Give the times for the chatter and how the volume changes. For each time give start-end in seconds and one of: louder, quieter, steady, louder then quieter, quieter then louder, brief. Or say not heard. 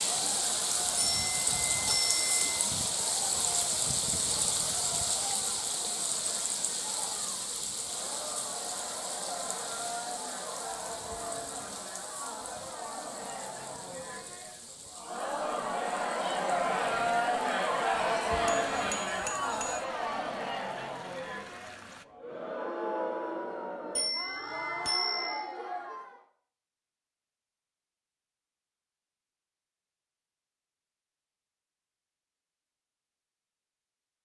0.1-26.2 louder then quieter.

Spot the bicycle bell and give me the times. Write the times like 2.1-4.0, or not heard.
0.9-2.5, 18.4-19.9, 23.9-25.4.